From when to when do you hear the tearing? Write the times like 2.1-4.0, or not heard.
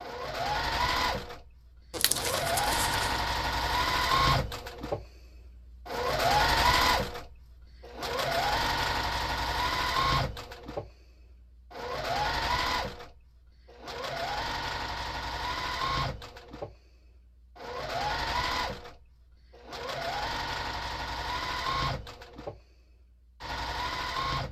1.9-3.2.